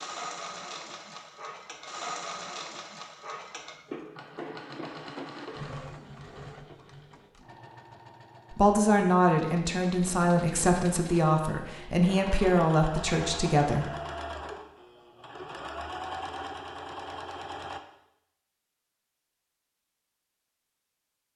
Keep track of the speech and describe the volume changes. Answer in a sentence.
The volume of the speech stays about the same.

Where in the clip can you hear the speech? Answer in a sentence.
The speech can be heard from 8.5 to 13.9 s.